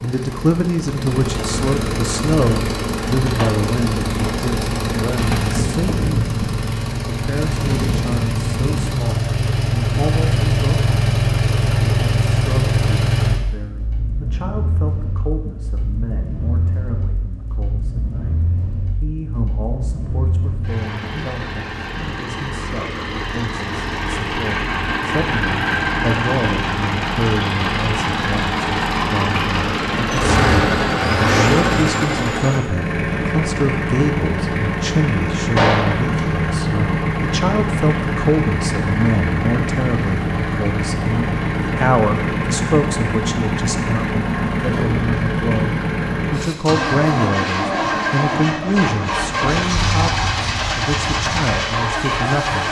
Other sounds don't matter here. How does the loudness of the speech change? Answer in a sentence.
The volume of the speech goes down, then up.